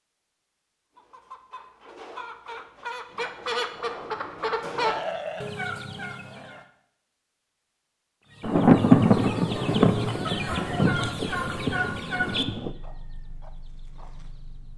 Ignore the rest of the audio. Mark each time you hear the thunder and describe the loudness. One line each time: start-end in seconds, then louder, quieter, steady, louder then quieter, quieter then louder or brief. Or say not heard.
8.4-12.8 quieter.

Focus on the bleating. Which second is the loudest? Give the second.
5 s.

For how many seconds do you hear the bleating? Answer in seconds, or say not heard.
2 s.